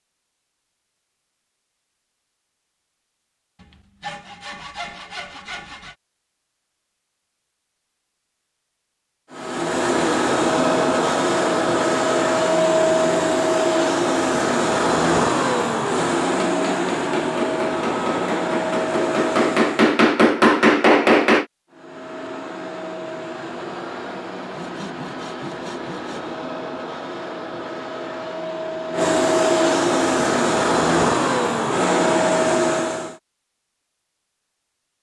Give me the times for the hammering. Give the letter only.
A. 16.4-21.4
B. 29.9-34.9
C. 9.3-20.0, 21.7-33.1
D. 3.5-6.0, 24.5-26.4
A.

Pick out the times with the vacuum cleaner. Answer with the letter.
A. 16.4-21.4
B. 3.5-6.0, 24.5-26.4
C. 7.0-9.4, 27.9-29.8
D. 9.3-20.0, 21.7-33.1
D.